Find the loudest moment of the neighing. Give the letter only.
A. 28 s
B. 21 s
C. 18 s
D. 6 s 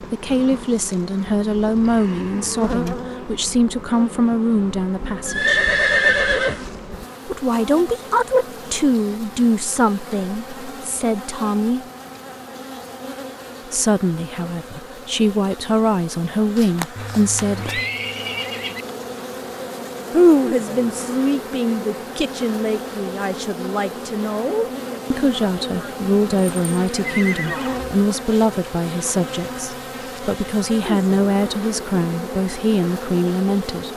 D.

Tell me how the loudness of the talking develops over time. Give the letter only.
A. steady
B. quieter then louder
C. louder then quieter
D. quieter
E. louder
A.